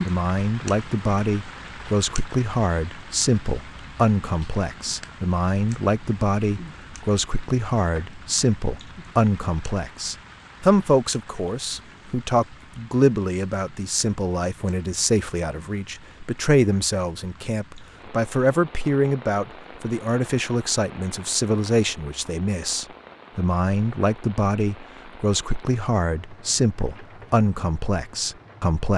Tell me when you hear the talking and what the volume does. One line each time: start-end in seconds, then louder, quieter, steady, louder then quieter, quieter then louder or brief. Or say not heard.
0.1-28.9 steady.